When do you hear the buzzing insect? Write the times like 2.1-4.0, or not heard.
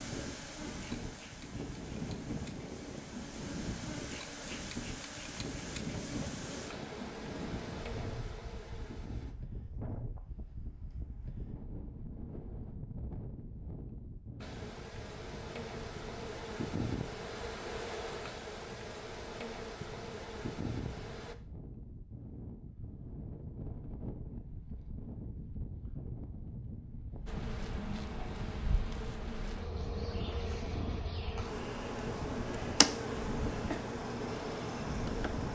0.0-9.3, 14.4-21.4, 27.2-35.5.